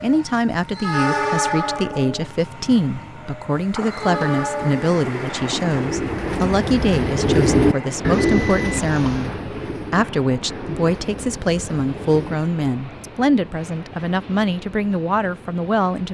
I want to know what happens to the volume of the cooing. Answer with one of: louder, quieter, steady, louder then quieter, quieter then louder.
louder then quieter.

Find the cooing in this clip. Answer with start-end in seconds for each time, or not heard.
4.0-12.4.